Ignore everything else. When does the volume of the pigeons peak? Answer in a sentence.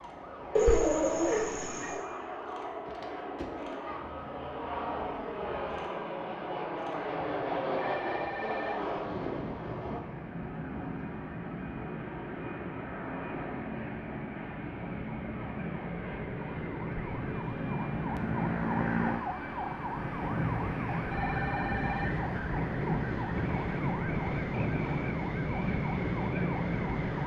The volume of the pigeons peaks at 1 second.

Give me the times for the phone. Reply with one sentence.
The phone can be heard from 7.8 to 8.8 s and from 21.1 to 22.2 s.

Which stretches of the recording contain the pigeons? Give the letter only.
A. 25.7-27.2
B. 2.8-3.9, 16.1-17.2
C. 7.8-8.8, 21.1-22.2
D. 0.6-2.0
D.